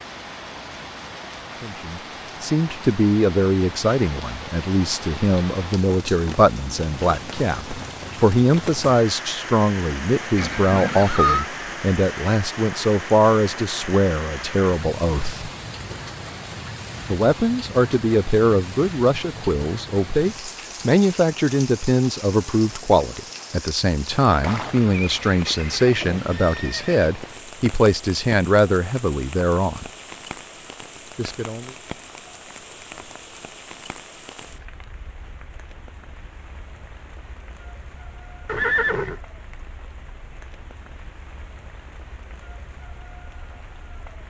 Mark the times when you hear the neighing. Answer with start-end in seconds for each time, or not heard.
10.3-11.4, 24.4-27.1, 38.5-39.2.